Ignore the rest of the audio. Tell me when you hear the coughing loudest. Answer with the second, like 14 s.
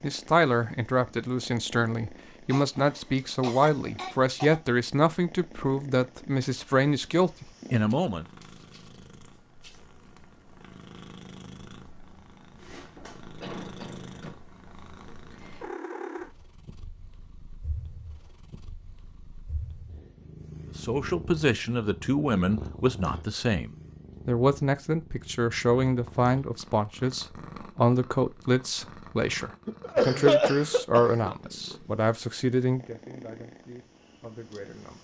30 s.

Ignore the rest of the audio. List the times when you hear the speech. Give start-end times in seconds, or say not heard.
0.0-8.2, 20.8-34.9.